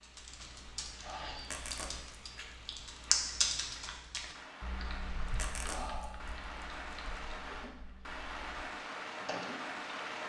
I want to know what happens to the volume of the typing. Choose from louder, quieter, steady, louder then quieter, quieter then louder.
louder then quieter.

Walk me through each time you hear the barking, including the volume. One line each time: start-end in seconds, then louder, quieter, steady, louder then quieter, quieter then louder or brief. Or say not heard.
not heard.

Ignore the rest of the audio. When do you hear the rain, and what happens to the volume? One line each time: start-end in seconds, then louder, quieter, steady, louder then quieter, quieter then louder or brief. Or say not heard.
0.0-10.2 louder.